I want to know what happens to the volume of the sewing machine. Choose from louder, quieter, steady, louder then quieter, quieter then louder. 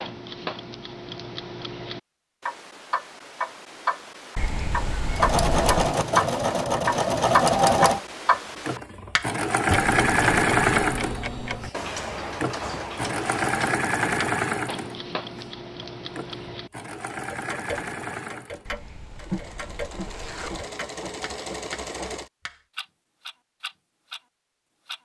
quieter.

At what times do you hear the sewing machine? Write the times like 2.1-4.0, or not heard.
5.2-22.3.